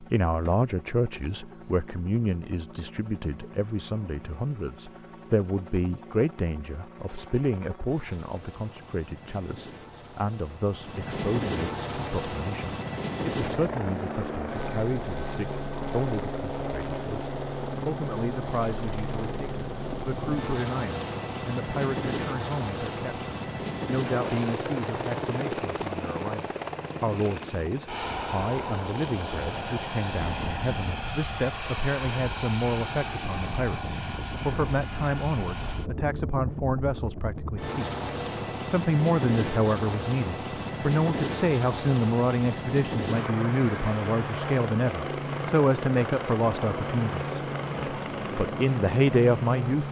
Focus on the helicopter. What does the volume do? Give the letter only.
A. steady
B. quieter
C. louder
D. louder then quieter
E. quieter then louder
C.